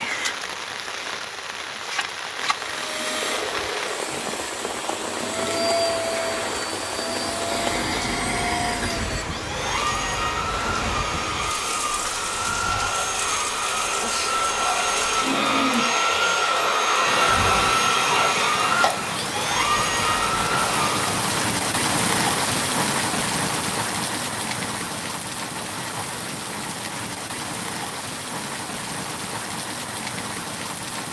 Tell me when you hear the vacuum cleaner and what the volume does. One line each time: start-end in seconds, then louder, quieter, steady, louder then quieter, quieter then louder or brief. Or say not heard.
2.5-21.1 louder.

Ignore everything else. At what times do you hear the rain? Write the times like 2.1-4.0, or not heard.
0.0-31.0.